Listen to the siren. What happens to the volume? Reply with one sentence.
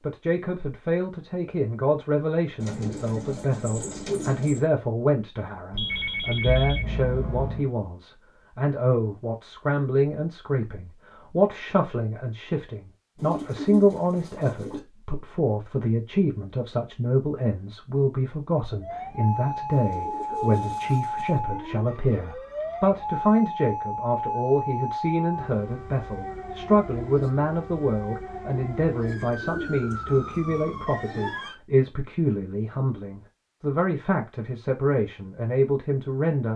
The volume of the siren goes down.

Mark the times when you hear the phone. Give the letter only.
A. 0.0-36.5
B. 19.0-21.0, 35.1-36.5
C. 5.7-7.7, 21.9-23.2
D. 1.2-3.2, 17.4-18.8
C.